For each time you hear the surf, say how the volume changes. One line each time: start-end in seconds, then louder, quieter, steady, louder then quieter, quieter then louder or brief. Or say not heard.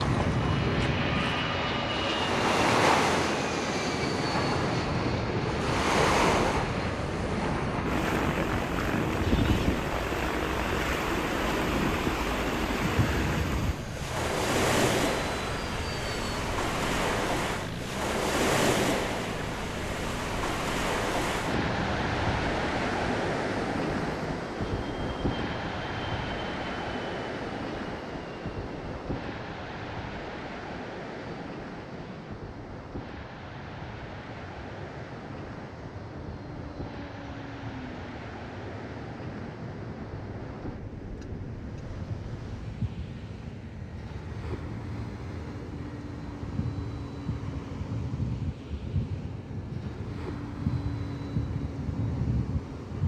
0.0-53.0 quieter.